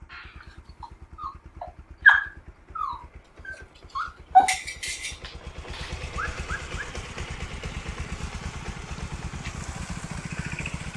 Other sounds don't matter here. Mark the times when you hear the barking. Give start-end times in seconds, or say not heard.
0.1-7.0.